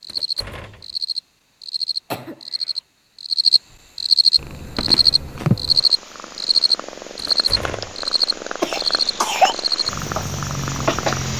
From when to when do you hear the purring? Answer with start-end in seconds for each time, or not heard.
4.3-11.3.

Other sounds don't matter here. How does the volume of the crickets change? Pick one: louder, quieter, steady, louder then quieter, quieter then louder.
louder then quieter.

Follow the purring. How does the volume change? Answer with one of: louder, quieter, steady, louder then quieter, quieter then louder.
quieter then louder.